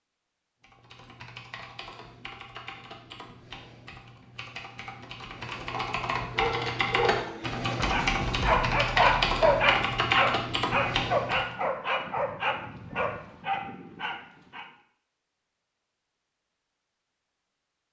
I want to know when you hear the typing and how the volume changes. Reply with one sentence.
The typing can be heard from 0.6 to 11.6 s, getting louder.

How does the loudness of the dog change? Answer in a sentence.
The volume of the dog goes up, then down.